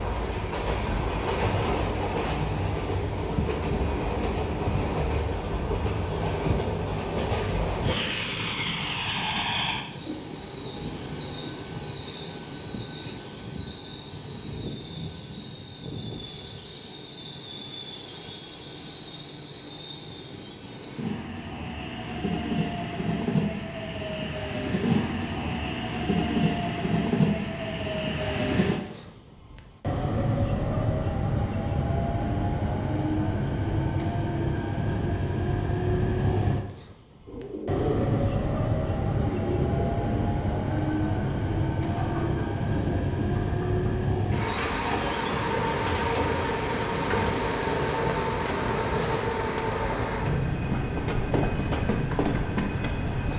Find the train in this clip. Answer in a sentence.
You can hear the train from 0.0 to 53.3 s.